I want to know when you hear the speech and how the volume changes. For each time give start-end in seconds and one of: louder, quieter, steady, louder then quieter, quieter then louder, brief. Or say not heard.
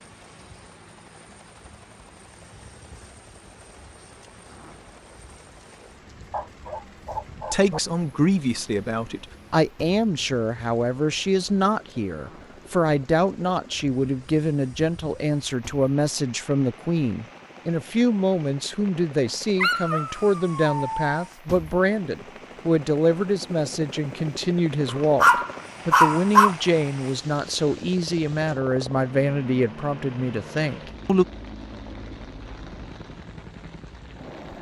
7.3-31.2 steady.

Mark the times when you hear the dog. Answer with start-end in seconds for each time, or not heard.
6.3-7.8, 19.6-21.1, 25.2-26.6.